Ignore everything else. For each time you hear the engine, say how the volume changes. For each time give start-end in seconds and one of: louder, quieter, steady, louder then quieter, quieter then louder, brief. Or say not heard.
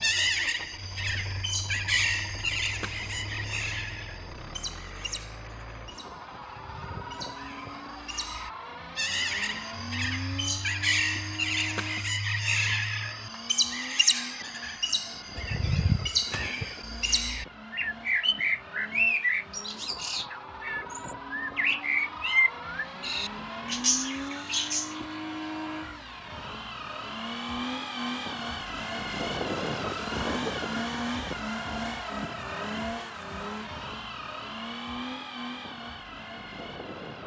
0.0-37.2 louder.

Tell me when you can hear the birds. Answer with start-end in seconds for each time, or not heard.
0.0-25.0.